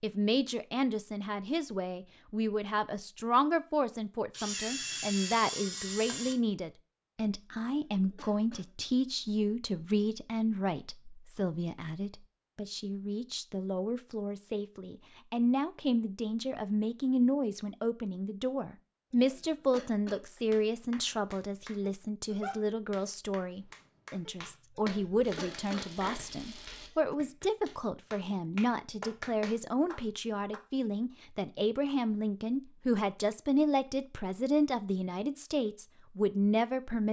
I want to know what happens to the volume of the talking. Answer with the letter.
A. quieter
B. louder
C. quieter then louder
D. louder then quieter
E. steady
E.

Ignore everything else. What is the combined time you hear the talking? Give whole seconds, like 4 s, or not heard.
37 s.